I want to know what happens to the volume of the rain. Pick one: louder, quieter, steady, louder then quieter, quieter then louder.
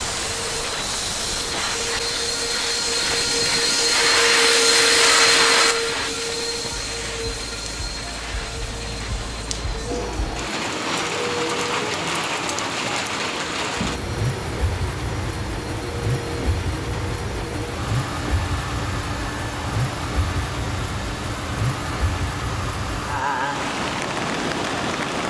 louder.